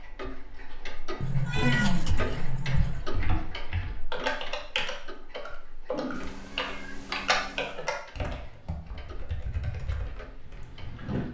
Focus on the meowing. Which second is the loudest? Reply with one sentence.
The volume of the meowing peaks at 2 seconds.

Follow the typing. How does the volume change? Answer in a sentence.
The loudness of the typing goes up, then down.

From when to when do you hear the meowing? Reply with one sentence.
You can hear the meowing from 1.2 to 3.0 s and from 6.1 to 7.8 s.